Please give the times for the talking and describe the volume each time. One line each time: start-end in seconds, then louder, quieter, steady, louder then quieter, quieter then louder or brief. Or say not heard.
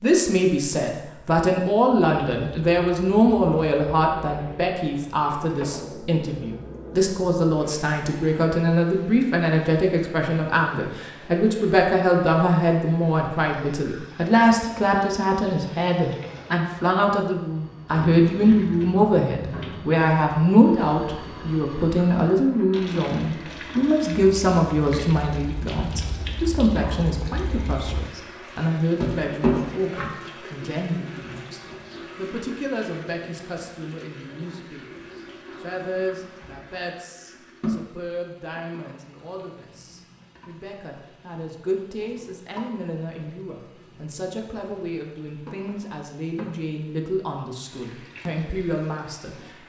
0.0-49.4 quieter.